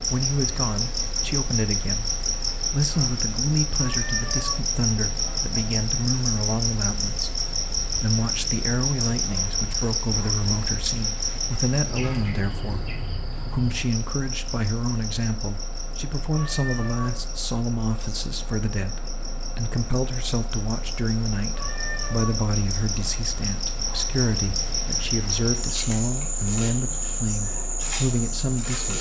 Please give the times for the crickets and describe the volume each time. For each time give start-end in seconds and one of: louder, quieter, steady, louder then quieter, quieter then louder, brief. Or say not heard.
0.0-28.9 quieter then louder.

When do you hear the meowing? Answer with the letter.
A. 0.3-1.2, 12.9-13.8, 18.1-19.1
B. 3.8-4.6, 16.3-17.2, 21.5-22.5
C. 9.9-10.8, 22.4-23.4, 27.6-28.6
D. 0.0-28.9
B.